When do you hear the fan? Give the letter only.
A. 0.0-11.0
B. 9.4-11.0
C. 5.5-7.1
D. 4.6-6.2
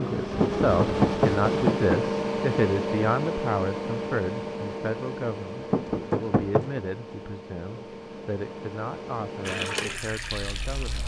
A.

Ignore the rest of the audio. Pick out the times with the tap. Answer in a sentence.
The tap can be heard from 9.4 to 11.0 s.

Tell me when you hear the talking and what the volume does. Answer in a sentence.
The talking can be heard from 0.0 to 11.0 s, getting quieter.